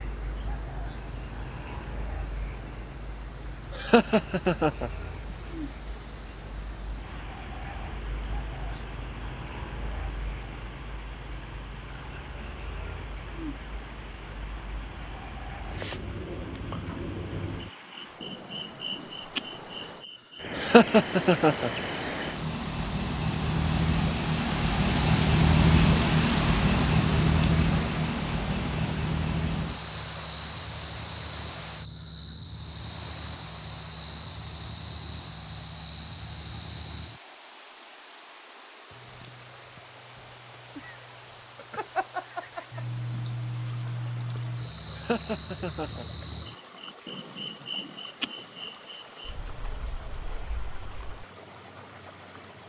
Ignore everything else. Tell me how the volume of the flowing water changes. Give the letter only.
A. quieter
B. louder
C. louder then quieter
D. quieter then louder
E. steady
C.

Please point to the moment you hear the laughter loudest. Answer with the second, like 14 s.
21 s.